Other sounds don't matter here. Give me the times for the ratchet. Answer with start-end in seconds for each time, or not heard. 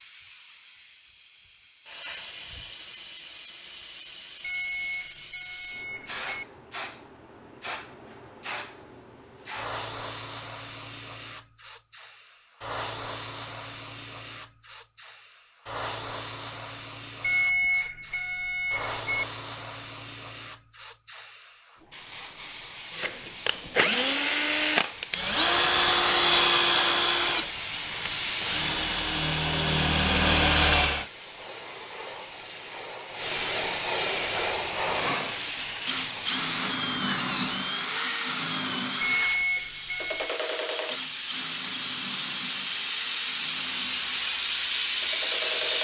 not heard.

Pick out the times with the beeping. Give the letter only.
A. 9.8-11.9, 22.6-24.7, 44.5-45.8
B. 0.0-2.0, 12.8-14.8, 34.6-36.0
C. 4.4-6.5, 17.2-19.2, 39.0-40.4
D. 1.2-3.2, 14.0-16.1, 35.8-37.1
C.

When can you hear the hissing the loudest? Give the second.
45 s.